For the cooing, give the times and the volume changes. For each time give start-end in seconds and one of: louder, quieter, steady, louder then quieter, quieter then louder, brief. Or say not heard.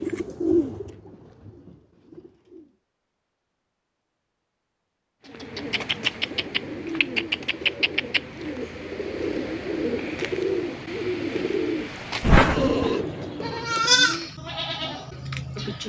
0.0-2.7 brief
5.2-13.9 steady.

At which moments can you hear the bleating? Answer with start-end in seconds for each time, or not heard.
12.2-15.8.